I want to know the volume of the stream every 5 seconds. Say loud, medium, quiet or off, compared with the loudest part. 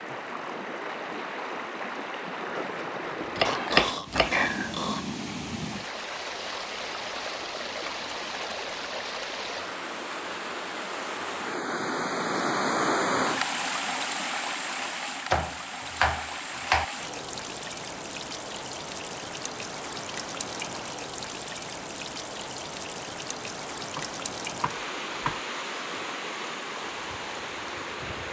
medium, medium, loud, medium, medium, medium.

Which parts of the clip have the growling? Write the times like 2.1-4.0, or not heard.
3.5-5.0.